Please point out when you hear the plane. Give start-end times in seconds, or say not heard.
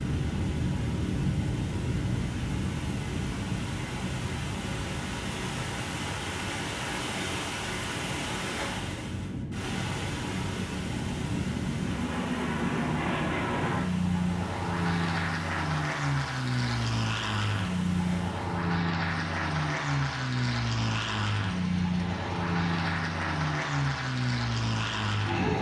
0.0-25.5.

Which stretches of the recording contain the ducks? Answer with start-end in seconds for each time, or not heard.
not heard.